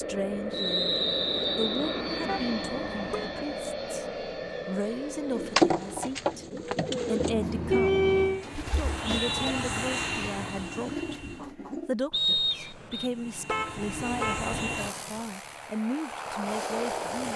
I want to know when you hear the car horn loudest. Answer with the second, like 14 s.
8 s.